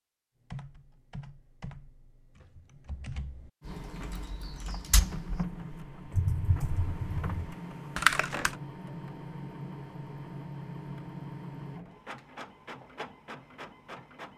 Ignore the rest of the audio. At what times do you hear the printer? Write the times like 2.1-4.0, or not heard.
3.6-14.3.